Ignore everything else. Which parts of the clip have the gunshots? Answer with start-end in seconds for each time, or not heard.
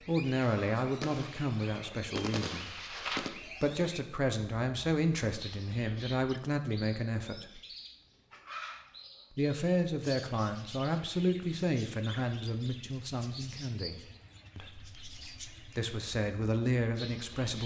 0.4-3.3.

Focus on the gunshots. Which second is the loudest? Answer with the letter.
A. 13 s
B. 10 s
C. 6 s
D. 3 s
D.